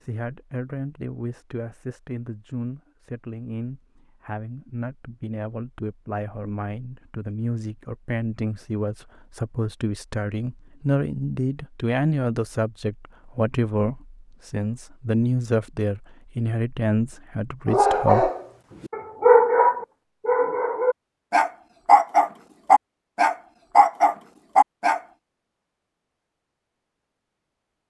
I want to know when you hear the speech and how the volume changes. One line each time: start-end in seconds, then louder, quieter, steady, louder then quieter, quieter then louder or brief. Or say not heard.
0.0-18.3 louder.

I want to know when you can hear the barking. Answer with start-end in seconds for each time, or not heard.
17.6-25.0.